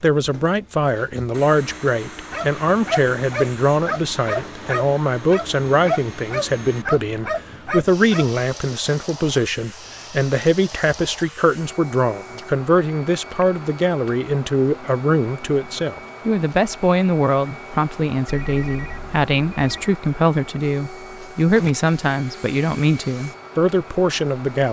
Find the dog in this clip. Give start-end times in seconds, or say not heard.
2.3-8.4.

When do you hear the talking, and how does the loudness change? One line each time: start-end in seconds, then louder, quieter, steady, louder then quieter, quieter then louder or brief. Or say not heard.
0.0-24.6 steady.